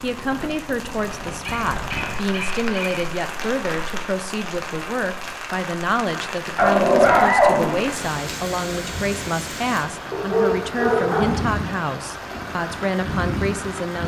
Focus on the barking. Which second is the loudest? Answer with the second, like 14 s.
7 s.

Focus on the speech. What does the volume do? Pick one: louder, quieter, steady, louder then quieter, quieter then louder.
steady.